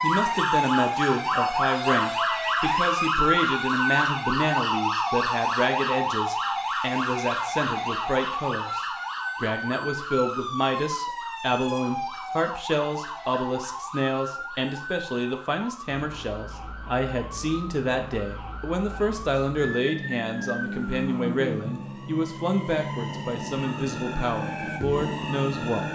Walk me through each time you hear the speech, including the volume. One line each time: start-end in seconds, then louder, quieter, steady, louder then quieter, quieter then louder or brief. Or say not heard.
0.0-25.8 steady.